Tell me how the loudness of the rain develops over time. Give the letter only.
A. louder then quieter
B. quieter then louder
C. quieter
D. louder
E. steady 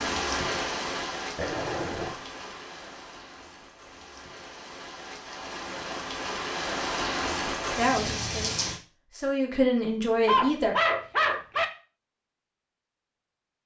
B.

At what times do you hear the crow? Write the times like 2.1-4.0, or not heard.
not heard.